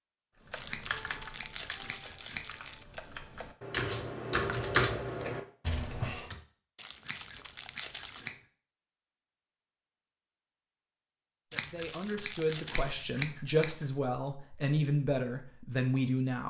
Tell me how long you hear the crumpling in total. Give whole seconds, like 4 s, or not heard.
5 s.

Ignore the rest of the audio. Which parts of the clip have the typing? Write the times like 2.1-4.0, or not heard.
0.5-6.4.